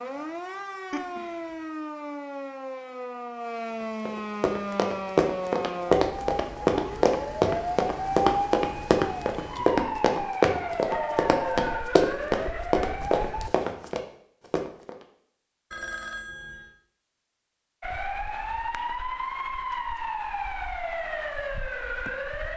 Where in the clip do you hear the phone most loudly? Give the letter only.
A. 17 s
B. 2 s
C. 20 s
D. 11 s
D.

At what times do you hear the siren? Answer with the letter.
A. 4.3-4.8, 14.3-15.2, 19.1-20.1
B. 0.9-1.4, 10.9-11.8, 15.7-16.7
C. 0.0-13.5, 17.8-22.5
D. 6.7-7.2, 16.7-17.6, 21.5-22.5
C.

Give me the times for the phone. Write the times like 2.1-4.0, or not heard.
0.9-1.4, 10.9-11.8, 15.7-16.7.